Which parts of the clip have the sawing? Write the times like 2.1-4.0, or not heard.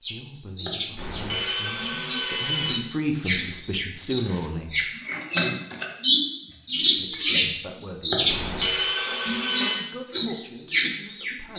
0.9-2.8, 8.2-9.8.